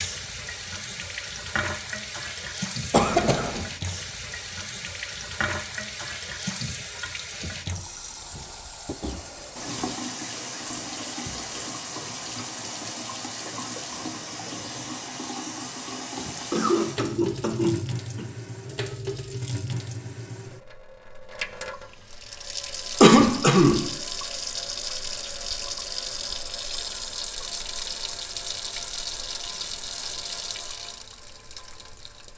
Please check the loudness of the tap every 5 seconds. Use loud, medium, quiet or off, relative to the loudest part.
loud, loud, loud, loud, loud, loud, medium.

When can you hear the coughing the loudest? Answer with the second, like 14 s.
23 s.